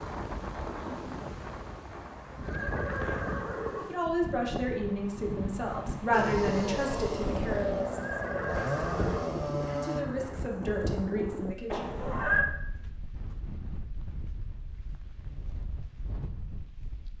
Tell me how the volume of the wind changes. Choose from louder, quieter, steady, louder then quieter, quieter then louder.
quieter.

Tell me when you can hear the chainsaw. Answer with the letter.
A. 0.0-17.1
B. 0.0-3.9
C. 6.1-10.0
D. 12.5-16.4
C.